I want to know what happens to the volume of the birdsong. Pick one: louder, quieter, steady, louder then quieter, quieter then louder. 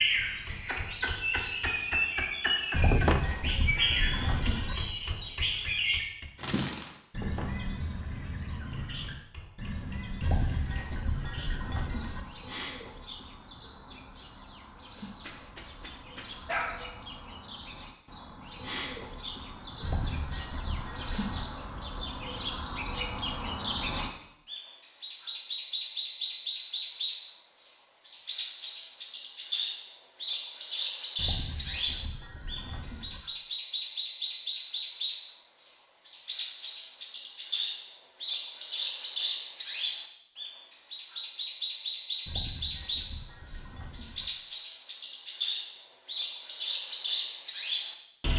quieter then louder.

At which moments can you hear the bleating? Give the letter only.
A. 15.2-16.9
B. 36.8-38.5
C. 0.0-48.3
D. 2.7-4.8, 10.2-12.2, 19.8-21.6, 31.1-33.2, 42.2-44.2
D.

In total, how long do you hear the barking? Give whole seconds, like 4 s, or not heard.
2 s.